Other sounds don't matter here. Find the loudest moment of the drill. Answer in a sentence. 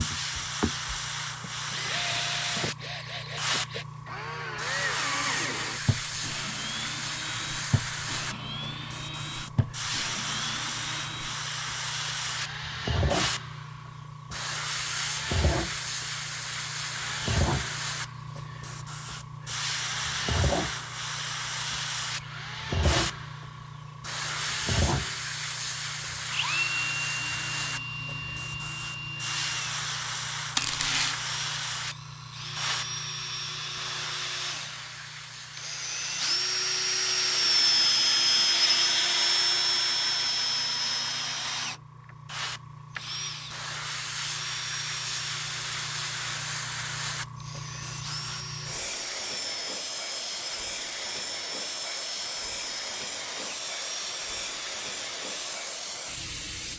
The loudest moment of the drill is at 38 seconds.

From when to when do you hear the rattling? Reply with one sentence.
You can hear the rattling from 30.6 to 31.1 s.